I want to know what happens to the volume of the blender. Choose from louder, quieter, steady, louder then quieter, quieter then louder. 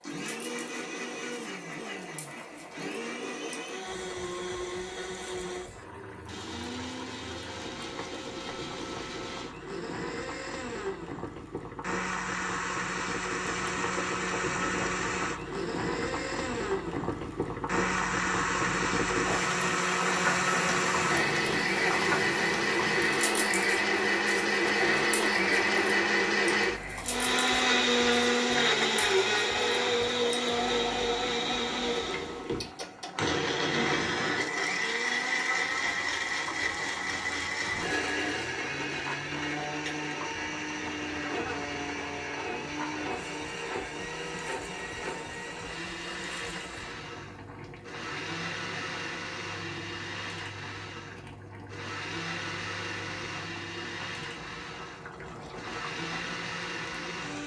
louder then quieter.